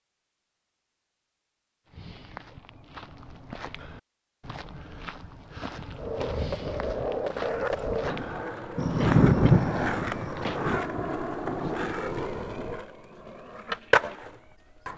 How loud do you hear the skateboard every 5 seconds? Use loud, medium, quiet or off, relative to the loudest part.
off, loud, loud.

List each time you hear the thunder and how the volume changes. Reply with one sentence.
You can hear the thunder from 8.8 to 12.8 s, getting quieter.